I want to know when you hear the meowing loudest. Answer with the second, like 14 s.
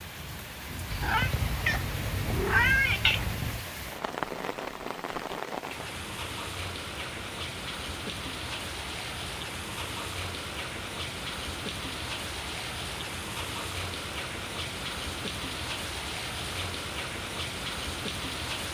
3 s.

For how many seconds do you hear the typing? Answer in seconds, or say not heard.
not heard.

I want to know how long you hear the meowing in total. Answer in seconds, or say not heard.
3 s.